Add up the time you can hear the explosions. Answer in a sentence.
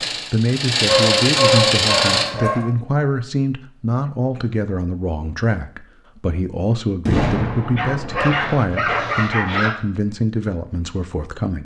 You can hear the explosions for 2 seconds altogether.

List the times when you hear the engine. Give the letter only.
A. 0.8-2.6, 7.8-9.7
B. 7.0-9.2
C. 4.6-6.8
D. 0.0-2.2
D.